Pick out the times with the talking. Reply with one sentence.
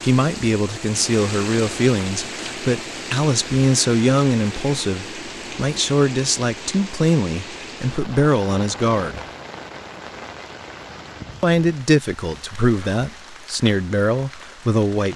You can hear the talking from 0.0 to 9.2 s and from 11.4 to 15.1 s.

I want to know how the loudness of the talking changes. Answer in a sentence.
The loudness of the talking stays about the same.